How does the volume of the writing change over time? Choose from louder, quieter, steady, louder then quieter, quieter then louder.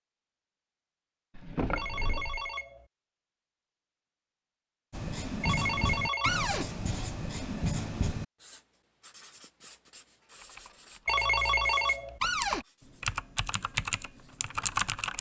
quieter.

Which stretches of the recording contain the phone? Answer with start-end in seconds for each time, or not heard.
1.8-2.9, 5.4-6.5, 11.1-12.2.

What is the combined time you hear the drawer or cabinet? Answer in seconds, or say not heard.
2 s.